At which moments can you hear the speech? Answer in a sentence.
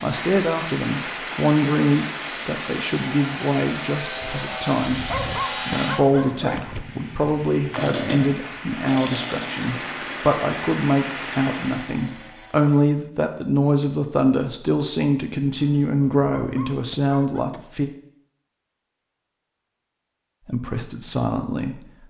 You can hear the speech from 0.0 to 5.0 s, from 5.7 to 17.9 s and from 20.4 to 21.8 s.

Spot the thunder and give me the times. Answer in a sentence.
The thunder can't be heard in this clip.